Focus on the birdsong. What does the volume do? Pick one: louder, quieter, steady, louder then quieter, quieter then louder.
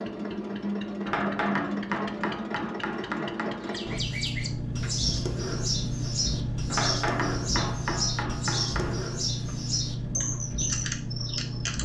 steady.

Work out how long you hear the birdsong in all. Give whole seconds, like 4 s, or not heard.
8 s.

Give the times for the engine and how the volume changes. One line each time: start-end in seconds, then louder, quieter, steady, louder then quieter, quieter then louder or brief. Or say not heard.
0.0-11.8 steady.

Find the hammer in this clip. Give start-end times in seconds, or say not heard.
1.1-3.7, 6.7-9.0.